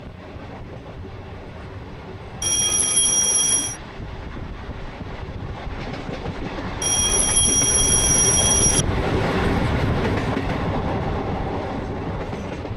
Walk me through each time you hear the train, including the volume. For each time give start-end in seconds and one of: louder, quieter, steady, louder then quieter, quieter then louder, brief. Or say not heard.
0.0-12.7 louder.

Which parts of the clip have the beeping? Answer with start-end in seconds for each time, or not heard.
2.4-3.8, 6.8-8.8.